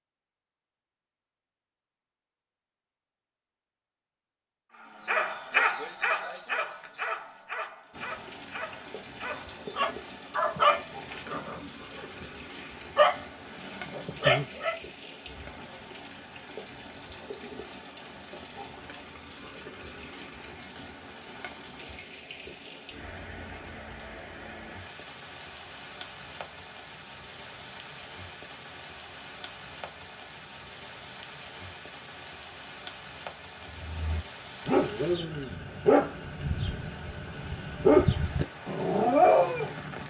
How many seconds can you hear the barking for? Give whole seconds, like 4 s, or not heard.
16 s.